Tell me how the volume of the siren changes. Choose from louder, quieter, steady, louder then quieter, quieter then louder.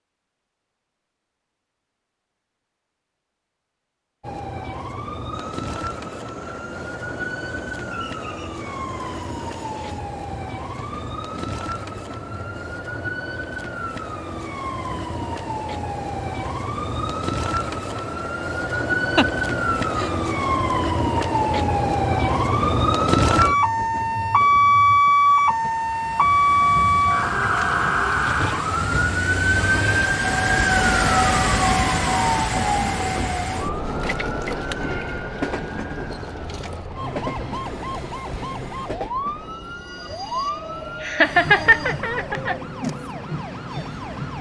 louder then quieter.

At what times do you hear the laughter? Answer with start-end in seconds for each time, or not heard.
19.1-20.1, 41.0-42.5.